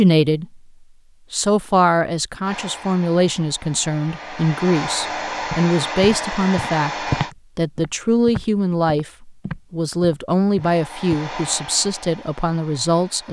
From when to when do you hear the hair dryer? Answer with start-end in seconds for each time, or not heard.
2.4-7.3, 10.6-13.2.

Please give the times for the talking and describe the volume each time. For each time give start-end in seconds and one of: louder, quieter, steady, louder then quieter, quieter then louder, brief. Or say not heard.
0.0-0.6 brief
1.3-13.2 steady.